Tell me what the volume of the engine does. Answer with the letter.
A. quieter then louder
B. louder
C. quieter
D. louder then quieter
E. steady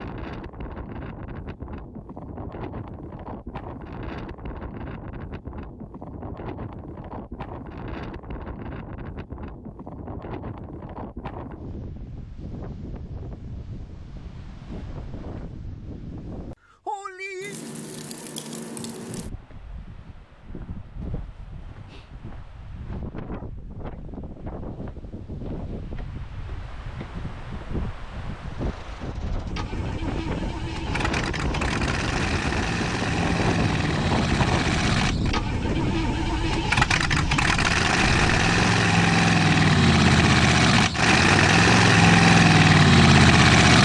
B.